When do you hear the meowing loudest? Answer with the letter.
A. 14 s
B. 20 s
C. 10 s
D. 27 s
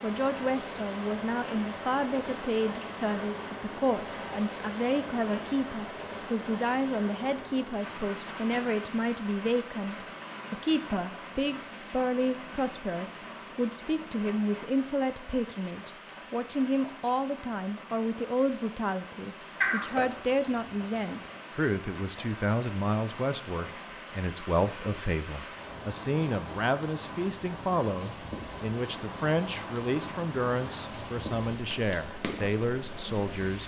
B.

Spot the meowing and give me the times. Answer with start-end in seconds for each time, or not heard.
19.6-21.2.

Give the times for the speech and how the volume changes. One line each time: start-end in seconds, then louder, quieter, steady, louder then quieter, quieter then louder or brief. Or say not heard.
0.0-33.6 steady.